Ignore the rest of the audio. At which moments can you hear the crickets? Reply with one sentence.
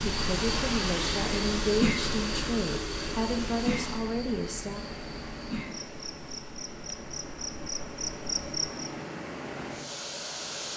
You can hear the crickets from 0.0 to 8.9 s.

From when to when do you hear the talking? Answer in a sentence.
You can hear the talking from 0.1 to 4.8 s.